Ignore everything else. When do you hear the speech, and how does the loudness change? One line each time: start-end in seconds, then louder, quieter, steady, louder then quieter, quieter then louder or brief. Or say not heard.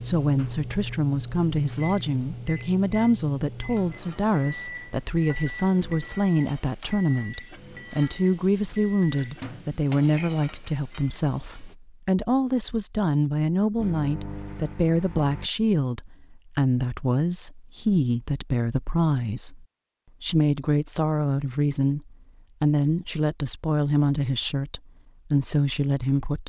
0.0-26.4 steady.